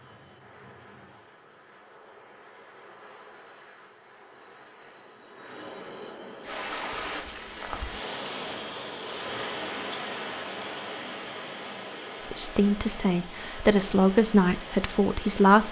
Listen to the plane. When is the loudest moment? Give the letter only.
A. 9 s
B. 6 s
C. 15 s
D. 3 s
B.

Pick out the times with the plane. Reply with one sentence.
You can hear the plane from 0.0 to 9.2 s.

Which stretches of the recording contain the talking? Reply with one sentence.
The talking can be heard from 12.2 to 15.6 s.